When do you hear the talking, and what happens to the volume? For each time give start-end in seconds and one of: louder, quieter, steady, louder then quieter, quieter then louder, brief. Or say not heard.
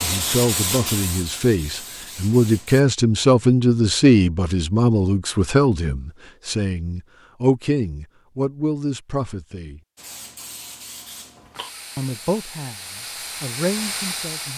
0.0-9.8 louder then quieter
11.9-14.5 brief.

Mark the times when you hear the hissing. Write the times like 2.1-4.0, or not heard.
0.0-2.9, 9.9-14.5.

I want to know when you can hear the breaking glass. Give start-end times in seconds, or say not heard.
not heard.